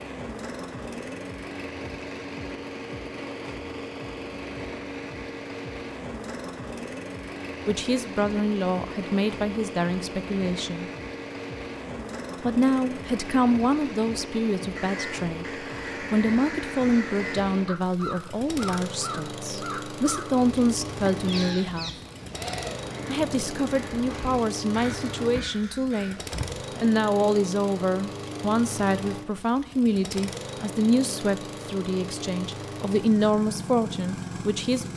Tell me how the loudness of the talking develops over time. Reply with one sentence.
The volume of the talking stays about the same.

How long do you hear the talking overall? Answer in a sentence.
You can hear the talking for 24 seconds altogether.